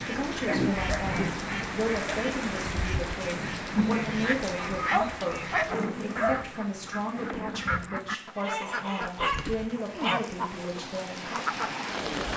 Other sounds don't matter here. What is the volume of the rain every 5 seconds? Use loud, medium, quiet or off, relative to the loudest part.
loud, medium, loud.